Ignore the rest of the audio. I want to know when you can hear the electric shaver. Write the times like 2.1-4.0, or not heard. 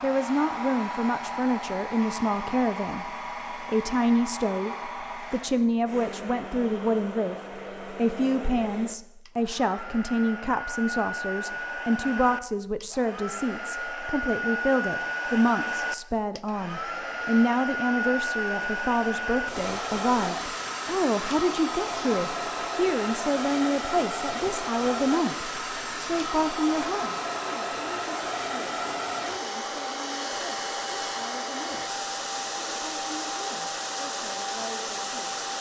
not heard.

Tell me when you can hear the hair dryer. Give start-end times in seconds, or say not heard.
0.0-35.5.